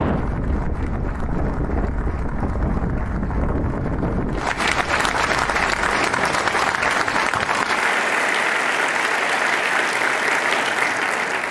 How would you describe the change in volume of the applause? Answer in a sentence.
The volume of the applause goes up.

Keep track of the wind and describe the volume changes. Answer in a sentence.
The volume of the wind goes down.